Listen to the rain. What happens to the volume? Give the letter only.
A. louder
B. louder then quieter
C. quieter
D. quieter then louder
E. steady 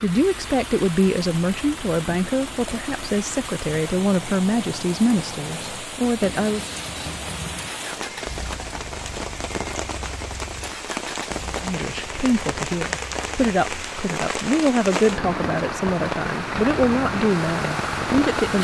A.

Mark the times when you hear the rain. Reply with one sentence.
You can hear the rain from 0.0 to 18.5 s.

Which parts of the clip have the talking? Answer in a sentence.
The talking can be heard from 0.0 to 6.7 s and from 11.6 to 18.5 s.